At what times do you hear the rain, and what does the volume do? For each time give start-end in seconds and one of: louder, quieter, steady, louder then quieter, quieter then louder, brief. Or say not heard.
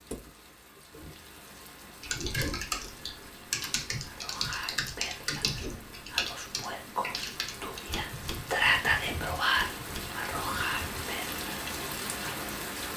0.0-12.9 louder.